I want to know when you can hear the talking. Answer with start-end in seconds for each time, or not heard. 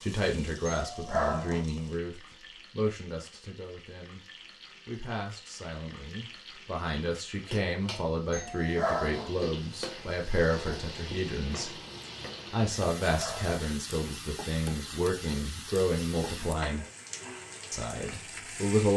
0.0-4.2, 4.8-11.8, 12.5-16.9, 17.7-18.9.